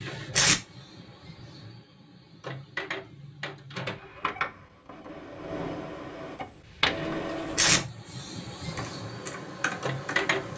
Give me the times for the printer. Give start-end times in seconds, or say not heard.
0.0-10.5.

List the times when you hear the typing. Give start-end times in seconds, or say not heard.
8.7-10.5.